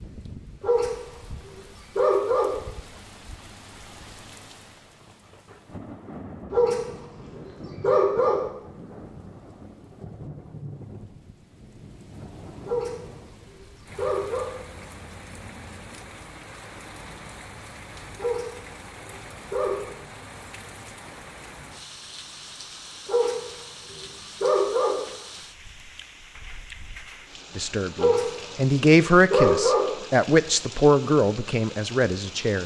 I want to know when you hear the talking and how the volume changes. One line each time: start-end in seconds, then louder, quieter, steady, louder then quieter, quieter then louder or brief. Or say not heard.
27.6-32.6 louder then quieter.